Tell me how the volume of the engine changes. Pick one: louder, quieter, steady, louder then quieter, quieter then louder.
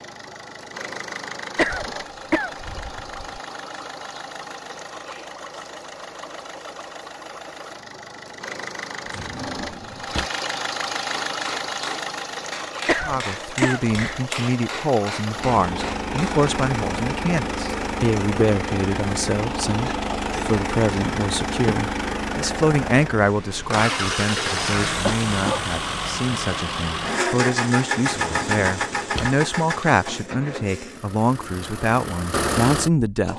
louder.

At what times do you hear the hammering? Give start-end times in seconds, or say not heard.
11.2-16.4.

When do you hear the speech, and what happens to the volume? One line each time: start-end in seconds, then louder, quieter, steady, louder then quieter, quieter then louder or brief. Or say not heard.
13.1-33.3 steady.